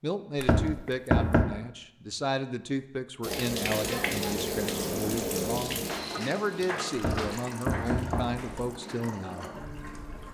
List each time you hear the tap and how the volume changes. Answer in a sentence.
The tap can be heard from 3.2 to 10.2 s, getting quieter.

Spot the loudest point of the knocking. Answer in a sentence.
The volume of the knocking peaks at 1 second.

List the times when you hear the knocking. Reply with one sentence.
You can hear the knocking from 0.4 to 1.4 s and from 7.0 to 8.4 s.